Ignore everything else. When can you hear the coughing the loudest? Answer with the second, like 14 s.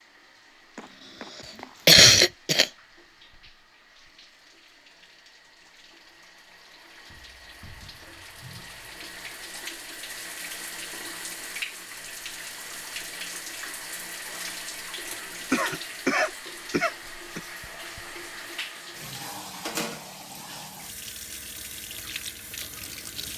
2 s.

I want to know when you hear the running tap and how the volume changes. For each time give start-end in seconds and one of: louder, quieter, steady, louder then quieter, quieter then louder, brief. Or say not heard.
0.0-23.3 louder.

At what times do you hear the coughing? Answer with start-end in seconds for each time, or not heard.
1.9-2.7, 14.9-17.4.